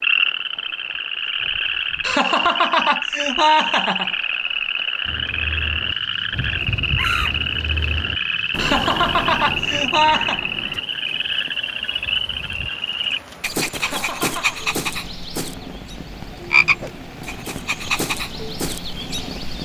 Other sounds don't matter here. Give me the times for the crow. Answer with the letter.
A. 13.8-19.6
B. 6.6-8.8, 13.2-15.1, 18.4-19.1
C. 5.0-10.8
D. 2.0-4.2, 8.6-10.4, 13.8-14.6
C.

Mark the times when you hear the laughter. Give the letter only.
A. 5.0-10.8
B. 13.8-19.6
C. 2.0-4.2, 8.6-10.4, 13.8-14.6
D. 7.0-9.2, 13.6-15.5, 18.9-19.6
C.